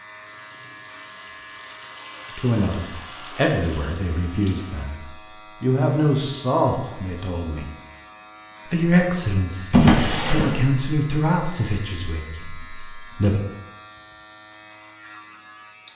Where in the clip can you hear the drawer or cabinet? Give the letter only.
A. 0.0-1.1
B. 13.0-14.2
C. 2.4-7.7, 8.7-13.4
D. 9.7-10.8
D.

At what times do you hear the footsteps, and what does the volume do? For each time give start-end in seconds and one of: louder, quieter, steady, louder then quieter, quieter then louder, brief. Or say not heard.
not heard.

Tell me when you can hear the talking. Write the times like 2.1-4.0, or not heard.
2.4-7.7, 8.7-13.4.